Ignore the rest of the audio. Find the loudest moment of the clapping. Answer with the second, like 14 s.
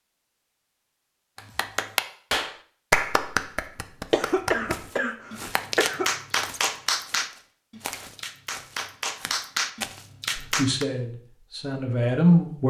3 s.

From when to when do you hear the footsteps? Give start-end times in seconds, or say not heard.
4.7-10.1.